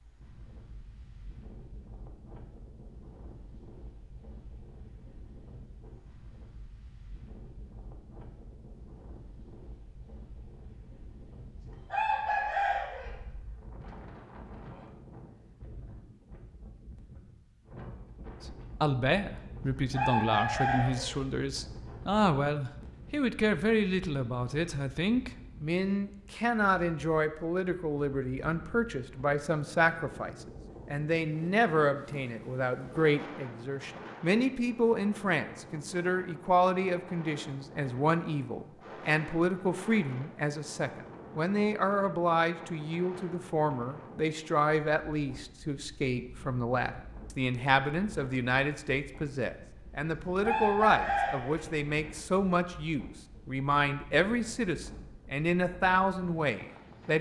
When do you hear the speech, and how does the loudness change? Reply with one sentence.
You can hear the speech from 18.5 to 57.1 s, at a steady volume.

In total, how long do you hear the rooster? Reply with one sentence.
You can hear the rooster for 5 seconds altogether.